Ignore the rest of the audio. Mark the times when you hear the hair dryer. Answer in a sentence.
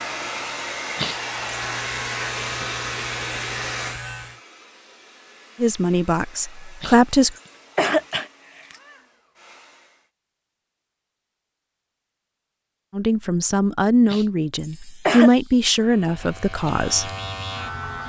You can hear the hair dryer from 0.0 to 10.1 s.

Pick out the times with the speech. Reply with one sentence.
The speech can be heard from 5.6 to 7.3 s and from 12.9 to 17.1 s.